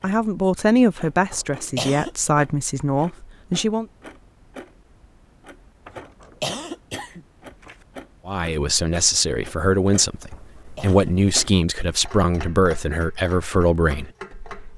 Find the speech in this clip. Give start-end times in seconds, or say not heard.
0.0-3.9, 8.2-14.7.